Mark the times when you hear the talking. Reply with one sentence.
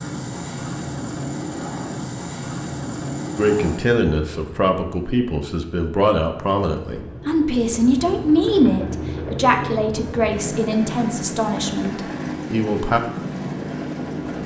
You can hear the talking from 3.4 to 13.0 s.